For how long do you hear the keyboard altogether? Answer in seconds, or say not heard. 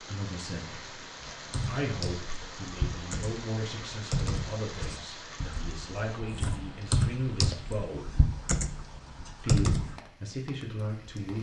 9 s.